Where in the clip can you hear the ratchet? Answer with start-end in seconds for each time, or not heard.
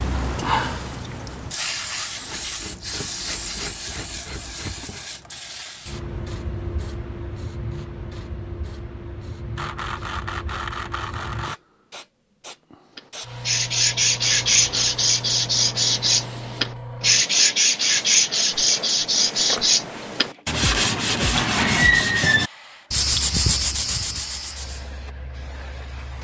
2.2-5.0, 9.6-11.6, 18.1-19.9.